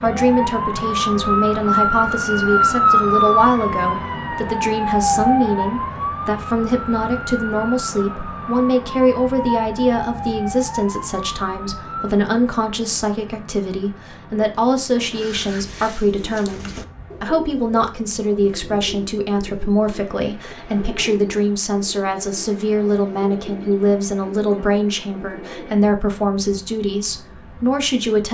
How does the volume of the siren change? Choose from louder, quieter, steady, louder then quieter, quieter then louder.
quieter.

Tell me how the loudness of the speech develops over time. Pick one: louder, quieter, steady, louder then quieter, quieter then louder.
steady.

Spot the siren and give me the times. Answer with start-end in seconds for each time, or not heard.
0.0-12.1.